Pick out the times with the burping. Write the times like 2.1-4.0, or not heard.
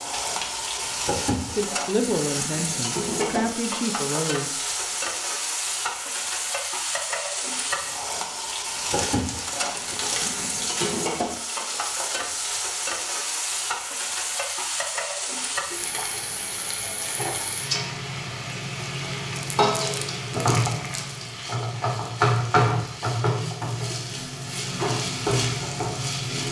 not heard.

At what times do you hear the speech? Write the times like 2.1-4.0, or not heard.
1.6-4.5.